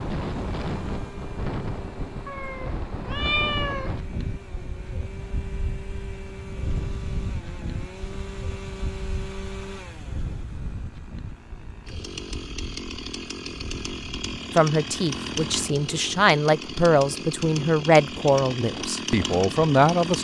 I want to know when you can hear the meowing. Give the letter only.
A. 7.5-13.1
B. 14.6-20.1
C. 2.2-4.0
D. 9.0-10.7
C.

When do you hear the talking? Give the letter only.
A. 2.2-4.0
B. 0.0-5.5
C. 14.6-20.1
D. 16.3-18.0
C.